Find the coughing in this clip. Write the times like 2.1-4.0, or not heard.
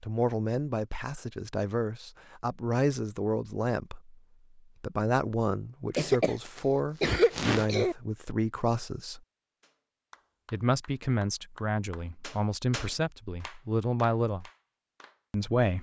5.9-8.0.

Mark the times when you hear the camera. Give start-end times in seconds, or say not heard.
not heard.